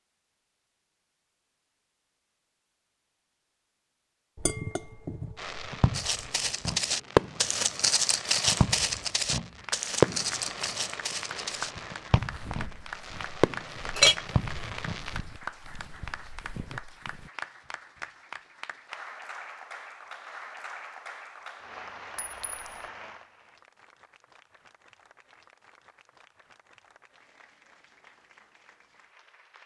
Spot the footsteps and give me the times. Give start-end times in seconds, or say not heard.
5.9-17.3.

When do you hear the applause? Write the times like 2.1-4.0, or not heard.
9.6-29.6.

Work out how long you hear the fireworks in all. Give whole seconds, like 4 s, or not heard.
10 s.